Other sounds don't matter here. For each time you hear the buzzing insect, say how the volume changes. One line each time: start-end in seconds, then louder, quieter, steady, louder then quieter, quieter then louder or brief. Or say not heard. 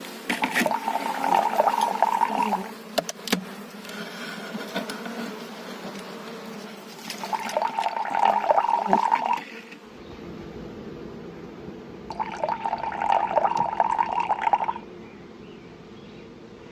0.0-16.6 quieter.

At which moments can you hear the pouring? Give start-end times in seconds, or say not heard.
0.3-2.7, 7.2-9.4, 12.1-14.8.